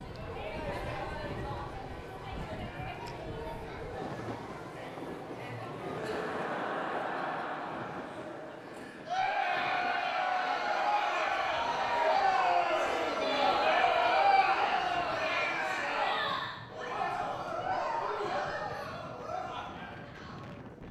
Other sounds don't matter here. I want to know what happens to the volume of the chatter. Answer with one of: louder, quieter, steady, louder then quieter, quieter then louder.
louder then quieter.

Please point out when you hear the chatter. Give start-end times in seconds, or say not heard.
0.0-20.8.